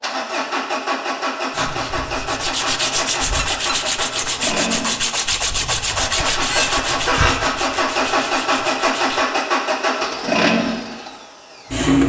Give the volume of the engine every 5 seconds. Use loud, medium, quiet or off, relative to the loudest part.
medium, loud, loud.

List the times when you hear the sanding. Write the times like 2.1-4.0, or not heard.
1.5-9.2.